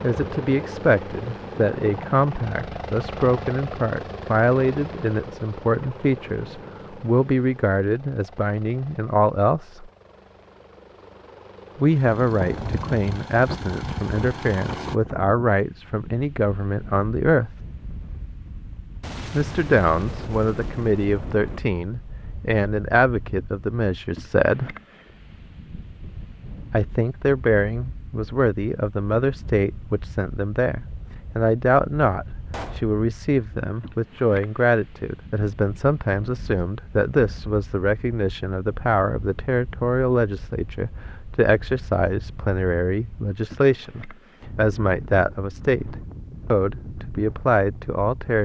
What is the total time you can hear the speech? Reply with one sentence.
The speech can be heard for 43 seconds in total.